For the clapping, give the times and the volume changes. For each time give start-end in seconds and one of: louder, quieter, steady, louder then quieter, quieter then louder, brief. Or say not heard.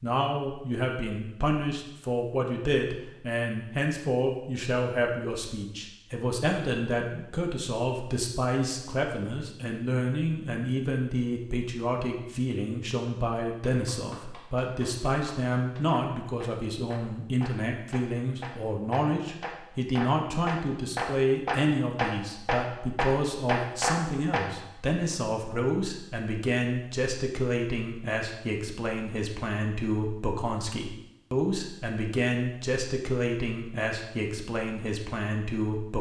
13.7-24.4 louder.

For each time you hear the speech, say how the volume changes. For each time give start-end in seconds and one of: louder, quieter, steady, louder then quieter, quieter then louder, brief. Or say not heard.
0.0-35.9 steady.